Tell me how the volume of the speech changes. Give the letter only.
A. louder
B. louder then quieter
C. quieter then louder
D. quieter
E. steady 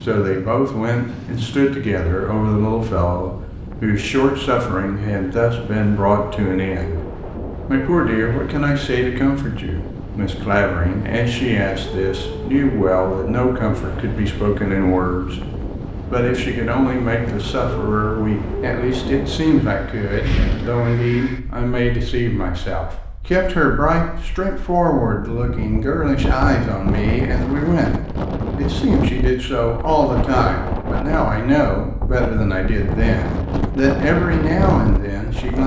E.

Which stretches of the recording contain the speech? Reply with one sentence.
The speech can be heard from 0.0 to 7.0 s, from 7.7 to 15.4 s and from 16.1 to 35.6 s.